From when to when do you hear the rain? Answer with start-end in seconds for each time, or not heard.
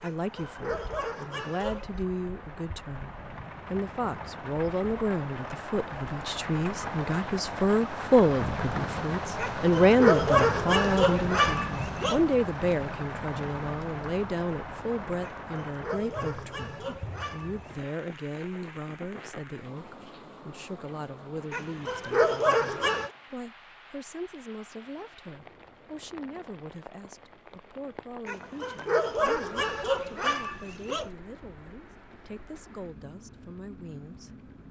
0.0-34.6.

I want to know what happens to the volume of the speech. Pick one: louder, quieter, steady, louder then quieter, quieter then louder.
louder then quieter.